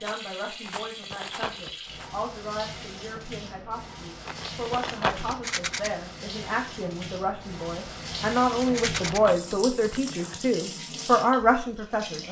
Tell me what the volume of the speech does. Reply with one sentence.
The loudness of the speech goes up.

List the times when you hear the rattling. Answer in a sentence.
The rattling can be heard from 0.1 to 2.1 s, from 5.3 to 5.9 s and from 8.6 to 9.2 s.